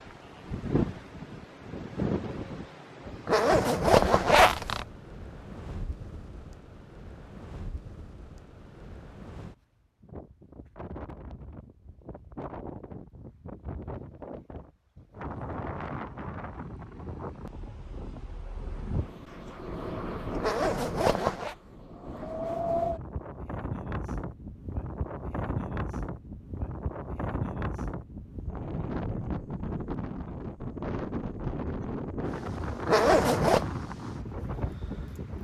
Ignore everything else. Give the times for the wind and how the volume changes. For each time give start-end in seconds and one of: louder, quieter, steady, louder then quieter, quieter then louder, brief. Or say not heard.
0.0-35.3 quieter then louder.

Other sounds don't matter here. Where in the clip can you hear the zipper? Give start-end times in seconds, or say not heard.
3.2-4.8, 20.4-21.6, 32.9-33.6.